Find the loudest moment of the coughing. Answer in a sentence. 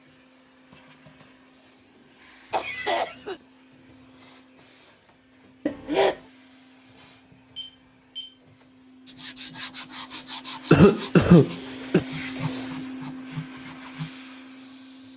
The loudest moment of the coughing is at 11 seconds.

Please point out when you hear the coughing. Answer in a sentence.
The coughing can be heard from 2.5 to 3.4 s, from 5.7 to 6.2 s and from 10.7 to 12.1 s.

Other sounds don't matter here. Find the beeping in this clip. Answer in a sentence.
The beeping can be heard from 7.5 to 8.3 s.